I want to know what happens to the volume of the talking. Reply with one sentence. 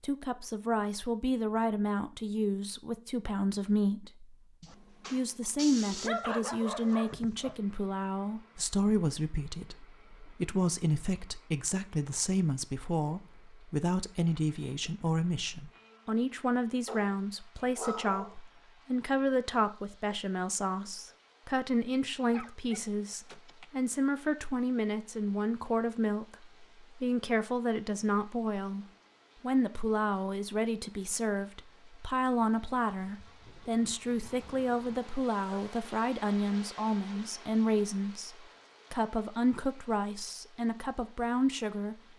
The volume of the talking stays about the same.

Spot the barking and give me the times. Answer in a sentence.
The barking can be heard from 4.6 to 7.5 s, from 16.9 to 18.4 s, from 22.3 to 23.7 s and from 34.2 to 35.6 s.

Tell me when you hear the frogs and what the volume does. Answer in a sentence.
The frogs can't be heard in this clip.